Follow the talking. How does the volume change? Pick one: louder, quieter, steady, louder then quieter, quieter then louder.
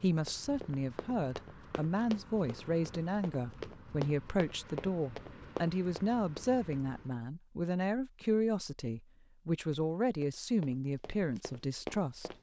steady.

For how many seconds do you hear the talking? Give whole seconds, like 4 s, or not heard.
12 s.